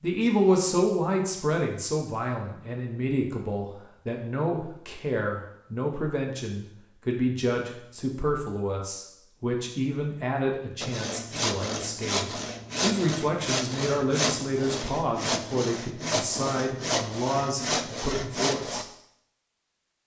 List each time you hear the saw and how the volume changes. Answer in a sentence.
You can hear the saw from 10.8 to 18.9 s, at a steady volume.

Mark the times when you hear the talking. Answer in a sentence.
You can hear the talking from 0.0 to 18.8 s.